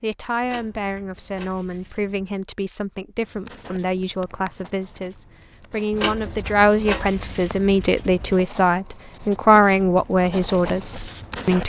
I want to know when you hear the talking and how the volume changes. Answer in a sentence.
The talking can be heard from 0.0 to 11.6 s, getting louder.